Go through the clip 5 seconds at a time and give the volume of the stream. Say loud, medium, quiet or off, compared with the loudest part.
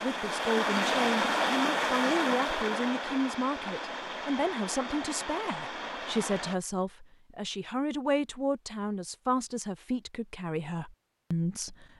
loud, medium, off.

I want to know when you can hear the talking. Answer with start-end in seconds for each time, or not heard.
0.0-11.9.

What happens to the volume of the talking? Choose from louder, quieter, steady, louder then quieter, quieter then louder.
steady.